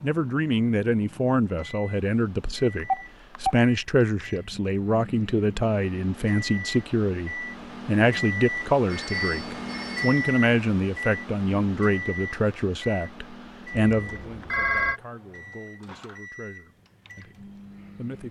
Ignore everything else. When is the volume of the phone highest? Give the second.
15 s.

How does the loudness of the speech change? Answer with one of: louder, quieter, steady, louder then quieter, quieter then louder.
quieter.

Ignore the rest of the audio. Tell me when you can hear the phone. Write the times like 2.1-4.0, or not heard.
2.8-3.6, 8.8-10.2, 13.7-15.0.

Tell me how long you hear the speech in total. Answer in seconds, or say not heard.
18 s.